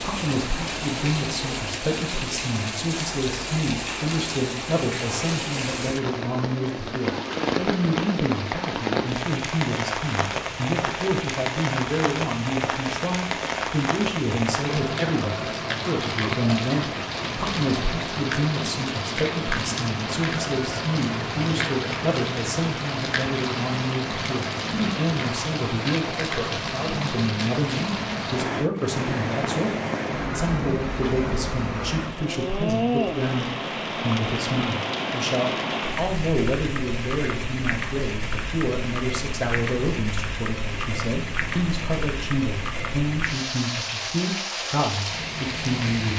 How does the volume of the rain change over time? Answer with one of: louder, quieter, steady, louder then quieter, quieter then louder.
steady.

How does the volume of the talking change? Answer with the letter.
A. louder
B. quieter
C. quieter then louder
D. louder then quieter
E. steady
E.